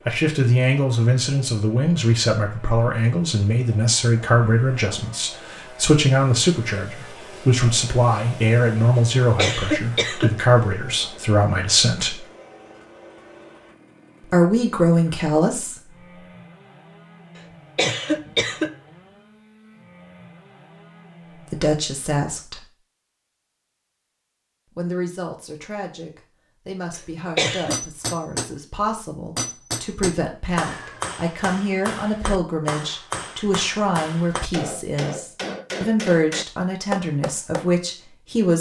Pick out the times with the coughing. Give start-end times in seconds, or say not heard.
9.3-10.3, 17.4-18.7, 26.9-27.8.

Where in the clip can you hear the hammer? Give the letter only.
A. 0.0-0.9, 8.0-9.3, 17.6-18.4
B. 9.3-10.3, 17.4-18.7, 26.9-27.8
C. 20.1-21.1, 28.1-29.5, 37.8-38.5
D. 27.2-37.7
D.